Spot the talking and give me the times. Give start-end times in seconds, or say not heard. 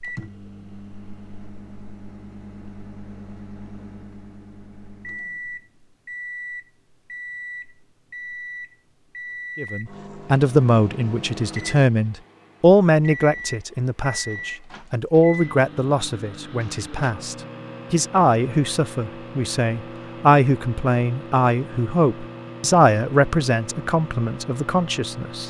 9.6-25.4.